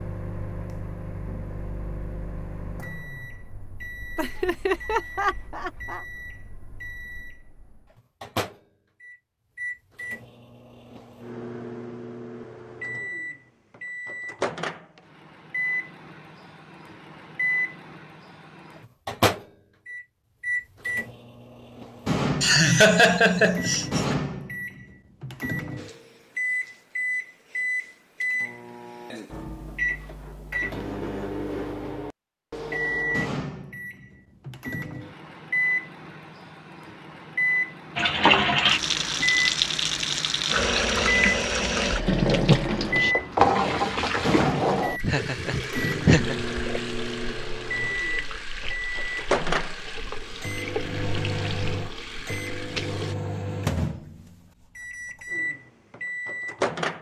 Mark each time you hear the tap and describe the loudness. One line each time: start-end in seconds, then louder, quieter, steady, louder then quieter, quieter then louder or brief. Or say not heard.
38.0-53.1 quieter.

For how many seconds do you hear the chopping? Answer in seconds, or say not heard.
not heard.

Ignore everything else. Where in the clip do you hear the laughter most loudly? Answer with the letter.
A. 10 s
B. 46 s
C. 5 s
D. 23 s
D.